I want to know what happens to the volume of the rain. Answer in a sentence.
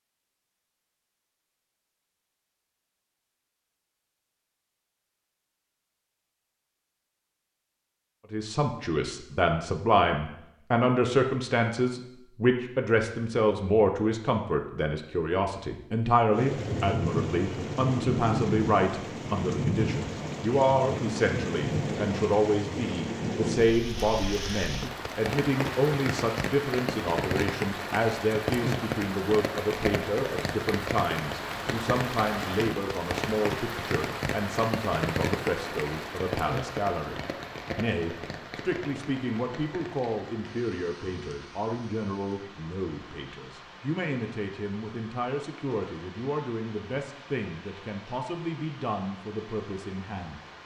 The volume of the rain goes down.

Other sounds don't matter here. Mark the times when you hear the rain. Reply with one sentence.
You can hear the rain from 16.3 to 50.6 s.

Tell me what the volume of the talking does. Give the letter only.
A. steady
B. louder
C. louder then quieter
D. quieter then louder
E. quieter
E.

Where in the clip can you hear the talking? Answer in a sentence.
The talking can be heard from 8.3 to 50.4 s.